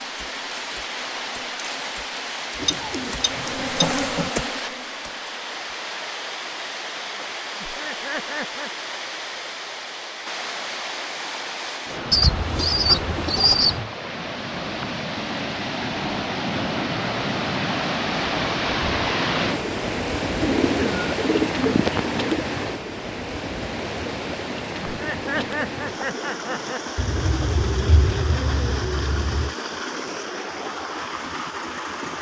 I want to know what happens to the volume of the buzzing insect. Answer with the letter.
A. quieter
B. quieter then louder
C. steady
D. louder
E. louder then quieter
D.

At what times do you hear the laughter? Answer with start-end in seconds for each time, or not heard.
7.6-8.7, 24.9-26.8.